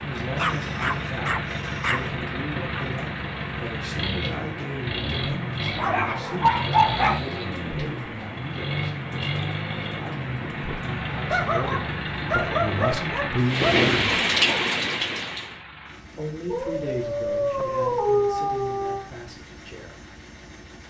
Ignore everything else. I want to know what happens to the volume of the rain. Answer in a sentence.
The loudness of the rain goes up.